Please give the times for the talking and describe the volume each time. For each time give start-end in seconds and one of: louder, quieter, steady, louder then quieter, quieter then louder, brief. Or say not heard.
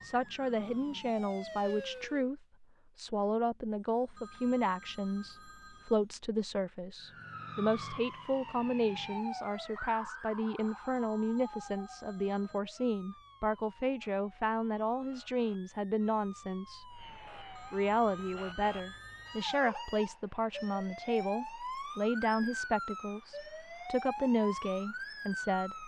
0.0-25.8 steady.